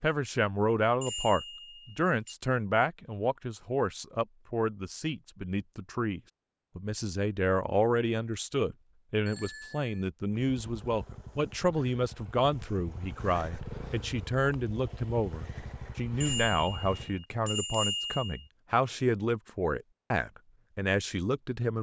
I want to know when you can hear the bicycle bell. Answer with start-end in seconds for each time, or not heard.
1.0-2.4, 9.2-10.1, 16.2-18.4.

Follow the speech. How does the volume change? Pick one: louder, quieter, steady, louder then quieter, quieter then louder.
steady.